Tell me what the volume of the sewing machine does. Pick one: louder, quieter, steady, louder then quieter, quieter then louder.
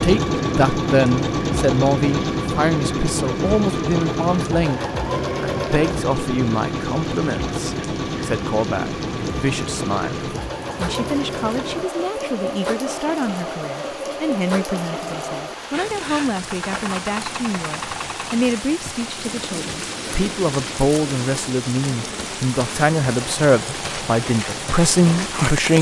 quieter.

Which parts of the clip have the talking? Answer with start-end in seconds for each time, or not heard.
0.0-4.8, 5.4-25.7.